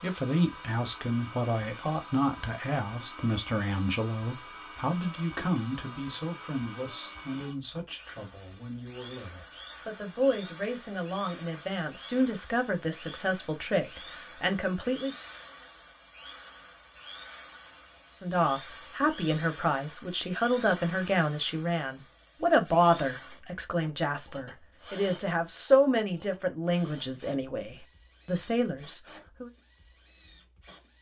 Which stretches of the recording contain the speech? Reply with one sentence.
The speech can be heard from 0.0 to 15.2 s and from 18.1 to 29.5 s.